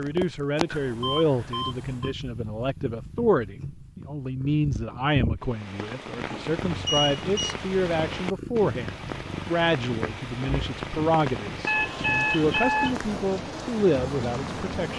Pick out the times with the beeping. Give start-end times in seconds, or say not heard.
0.7-2.1, 6.2-7.5, 11.7-12.9.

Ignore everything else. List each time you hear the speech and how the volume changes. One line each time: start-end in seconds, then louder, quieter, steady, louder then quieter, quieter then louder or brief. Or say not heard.
0.0-14.9 steady.